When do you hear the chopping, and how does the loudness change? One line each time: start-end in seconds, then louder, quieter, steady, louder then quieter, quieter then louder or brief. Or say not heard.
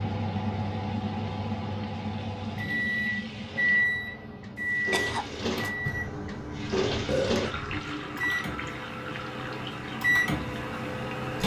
not heard.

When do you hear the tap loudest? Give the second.
7 s.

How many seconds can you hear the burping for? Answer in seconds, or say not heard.
2 s.